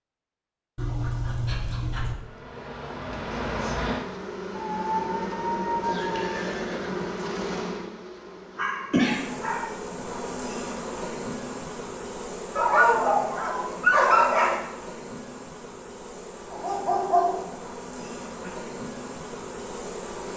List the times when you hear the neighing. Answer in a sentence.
The neighing can be heard from 5.8 to 7.7 s.